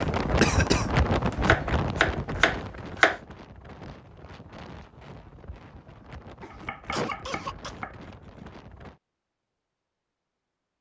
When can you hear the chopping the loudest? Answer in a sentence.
The volume of the chopping peaks at 3 seconds.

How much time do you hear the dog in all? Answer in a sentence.
You can't hear the dog here.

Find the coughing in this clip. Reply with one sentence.
The coughing can be heard from 0.4 to 0.8 s and from 6.4 to 7.7 s.